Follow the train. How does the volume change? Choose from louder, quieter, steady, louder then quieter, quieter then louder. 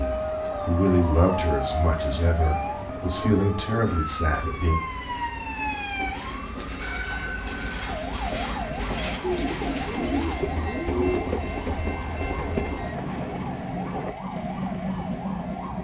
quieter then louder.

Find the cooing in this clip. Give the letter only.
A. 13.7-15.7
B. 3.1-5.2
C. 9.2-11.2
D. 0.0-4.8
C.